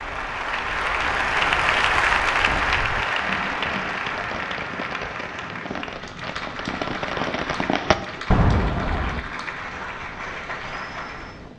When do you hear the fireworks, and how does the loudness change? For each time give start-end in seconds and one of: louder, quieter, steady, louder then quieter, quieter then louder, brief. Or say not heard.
2.4-9.2 louder.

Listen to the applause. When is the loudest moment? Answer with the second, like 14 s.
2 s.